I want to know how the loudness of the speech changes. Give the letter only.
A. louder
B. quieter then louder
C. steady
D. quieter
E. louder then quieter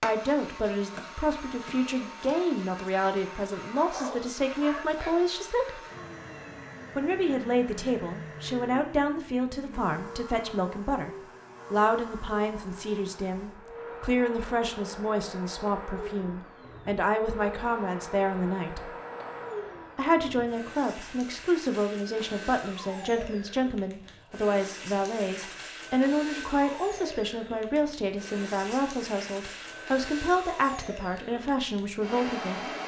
C.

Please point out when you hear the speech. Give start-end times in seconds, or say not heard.
0.0-5.8, 7.0-18.9, 19.9-32.7.